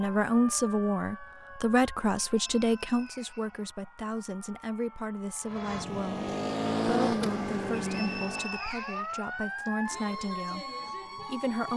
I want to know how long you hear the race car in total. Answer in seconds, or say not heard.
3 s.